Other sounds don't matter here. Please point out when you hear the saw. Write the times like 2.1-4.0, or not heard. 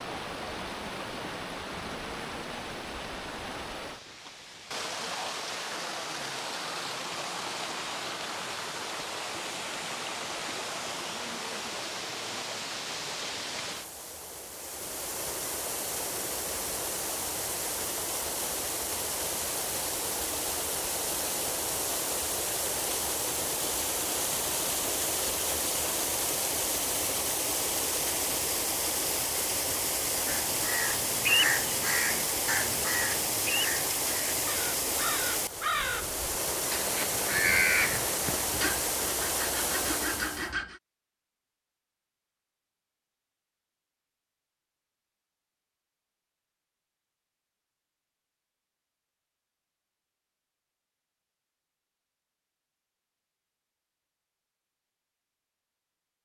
38.4-40.8.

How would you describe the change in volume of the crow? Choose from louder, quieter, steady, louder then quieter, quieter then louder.
quieter then louder.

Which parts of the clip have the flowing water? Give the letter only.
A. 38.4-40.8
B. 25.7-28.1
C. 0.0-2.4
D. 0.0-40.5
D.